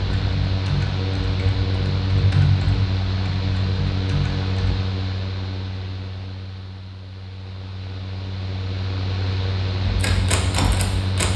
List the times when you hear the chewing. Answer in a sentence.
The chewing can't be heard in this clip.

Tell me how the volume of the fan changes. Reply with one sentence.
The loudness of the fan goes down, then up.